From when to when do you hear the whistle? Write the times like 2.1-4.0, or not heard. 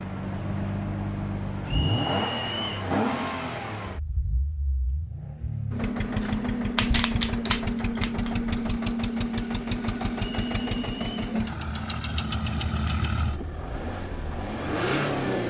1.6-2.9, 10.2-11.2.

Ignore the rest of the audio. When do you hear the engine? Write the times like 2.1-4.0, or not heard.
0.0-15.4.